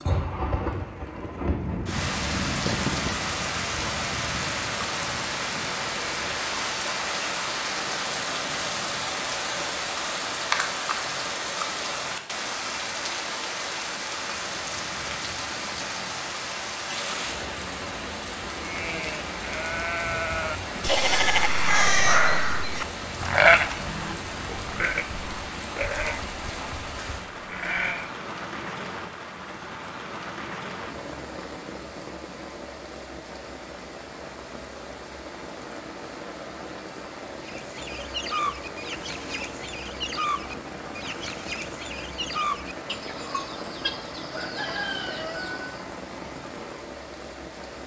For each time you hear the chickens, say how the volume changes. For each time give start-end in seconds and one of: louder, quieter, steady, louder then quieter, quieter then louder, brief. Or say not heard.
37.5-45.9 steady.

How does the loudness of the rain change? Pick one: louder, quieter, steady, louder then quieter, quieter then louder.
quieter.